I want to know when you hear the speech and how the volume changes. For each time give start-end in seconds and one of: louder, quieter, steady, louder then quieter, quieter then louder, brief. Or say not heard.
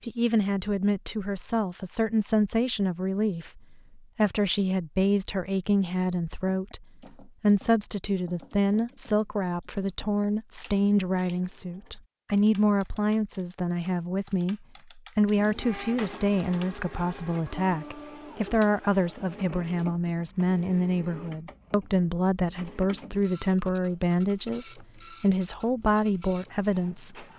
0.0-27.3 steady.